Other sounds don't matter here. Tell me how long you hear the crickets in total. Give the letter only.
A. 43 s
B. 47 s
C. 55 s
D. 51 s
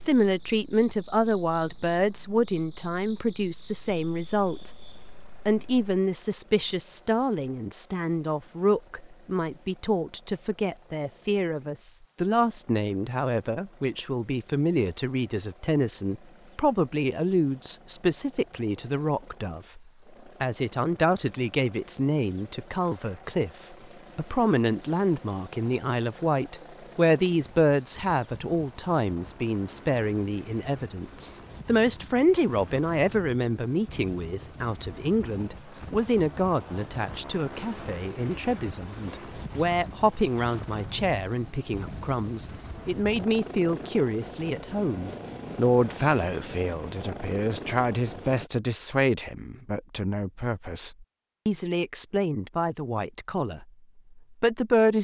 A.